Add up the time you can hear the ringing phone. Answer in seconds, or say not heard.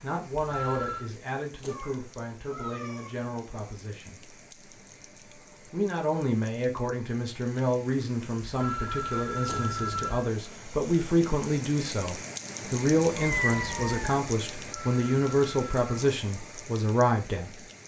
4 s.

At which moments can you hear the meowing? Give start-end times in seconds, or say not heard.
1.6-3.1, 9.6-10.2, 13.2-14.2.